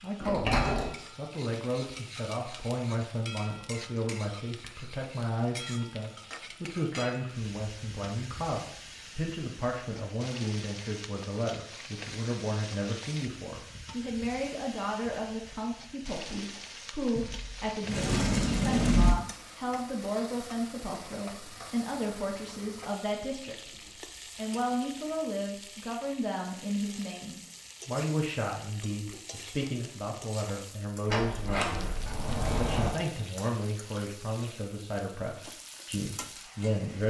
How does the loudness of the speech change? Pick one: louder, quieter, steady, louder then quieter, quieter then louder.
steady.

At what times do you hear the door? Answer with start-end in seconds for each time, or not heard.
0.2-0.9, 17.1-19.1, 31.1-33.0.